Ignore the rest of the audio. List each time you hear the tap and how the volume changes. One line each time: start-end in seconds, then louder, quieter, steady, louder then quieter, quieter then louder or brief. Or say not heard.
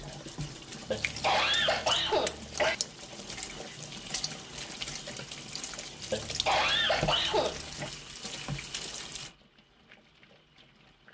0.0-11.1 quieter.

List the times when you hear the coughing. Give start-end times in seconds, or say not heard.
0.8-2.8, 6.1-7.9.